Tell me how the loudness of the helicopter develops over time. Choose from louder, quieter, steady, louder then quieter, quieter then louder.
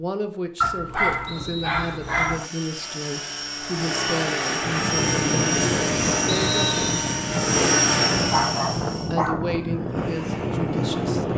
louder.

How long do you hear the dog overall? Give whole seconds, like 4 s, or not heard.
3 s.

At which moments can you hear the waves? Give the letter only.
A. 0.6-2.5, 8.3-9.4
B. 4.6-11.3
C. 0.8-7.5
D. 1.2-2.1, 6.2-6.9
B.